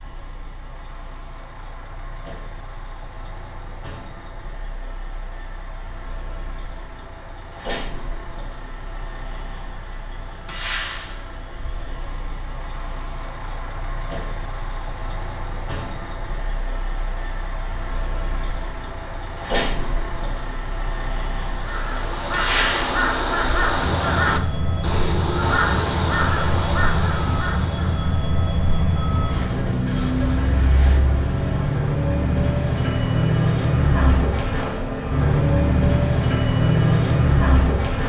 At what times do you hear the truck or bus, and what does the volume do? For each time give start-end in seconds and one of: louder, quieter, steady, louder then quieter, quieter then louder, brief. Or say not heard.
0.0-38.0 louder.